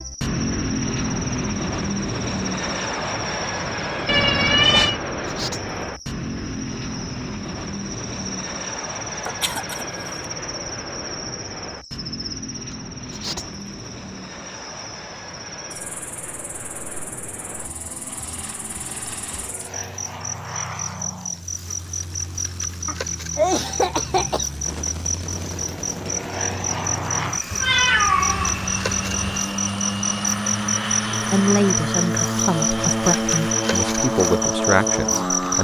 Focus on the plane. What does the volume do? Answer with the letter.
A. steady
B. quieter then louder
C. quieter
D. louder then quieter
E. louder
B.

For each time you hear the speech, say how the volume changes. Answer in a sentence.
The speech can be heard from 31.2 to 35.5 s, at a steady volume.